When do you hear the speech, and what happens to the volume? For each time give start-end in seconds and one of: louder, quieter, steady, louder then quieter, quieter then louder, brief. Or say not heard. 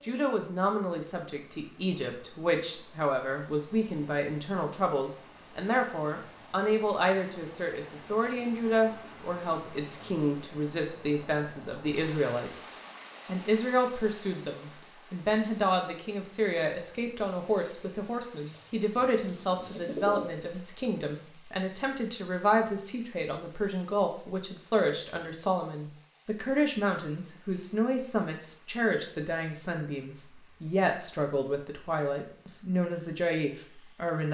0.0-34.2 steady.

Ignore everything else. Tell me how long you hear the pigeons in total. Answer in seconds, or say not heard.
2 s.